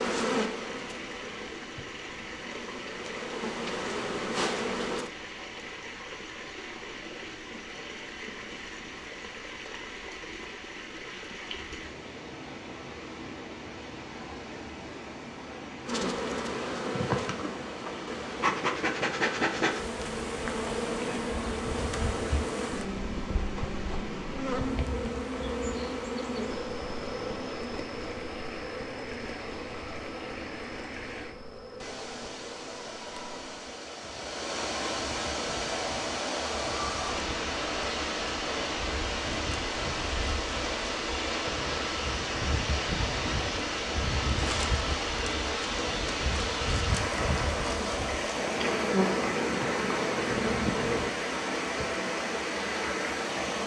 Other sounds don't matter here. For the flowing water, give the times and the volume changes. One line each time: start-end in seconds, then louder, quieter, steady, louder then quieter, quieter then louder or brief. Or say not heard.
0.2-53.6 louder.